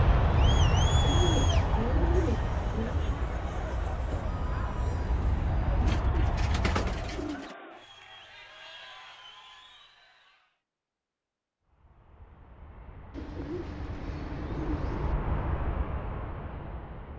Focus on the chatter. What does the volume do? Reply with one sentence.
The volume of the chatter goes down.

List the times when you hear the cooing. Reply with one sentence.
You can hear the cooing from 1.0 to 3.0 s, from 5.8 to 7.5 s and from 13.1 to 15.2 s.